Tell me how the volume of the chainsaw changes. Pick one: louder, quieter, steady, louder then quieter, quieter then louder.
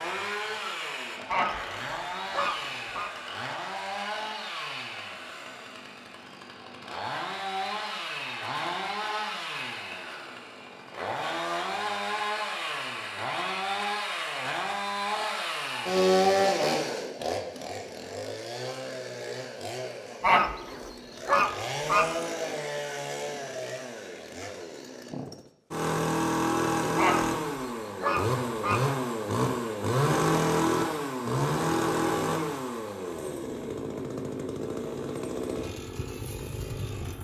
louder.